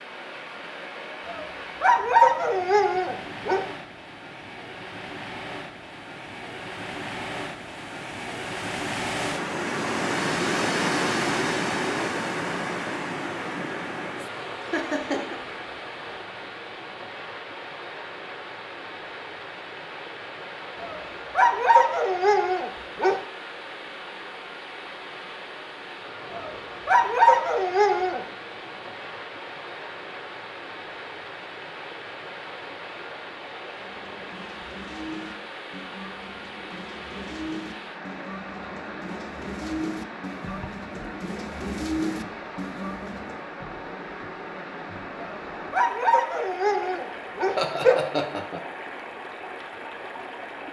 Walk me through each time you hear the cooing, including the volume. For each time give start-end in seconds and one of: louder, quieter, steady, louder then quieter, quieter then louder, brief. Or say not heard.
33.8-43.5 louder.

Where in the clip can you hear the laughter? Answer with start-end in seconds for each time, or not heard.
14.6-15.3, 47.5-48.6.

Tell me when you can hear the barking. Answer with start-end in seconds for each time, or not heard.
1.2-3.6, 20.8-23.1, 26.3-28.2, 45.2-48.0.